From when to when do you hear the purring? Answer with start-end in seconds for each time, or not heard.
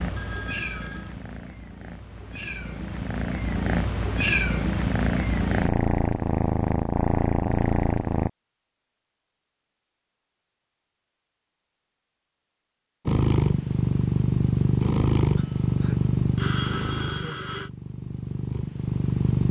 0.0-8.3, 13.1-19.4.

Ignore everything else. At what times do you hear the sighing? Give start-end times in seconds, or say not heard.
not heard.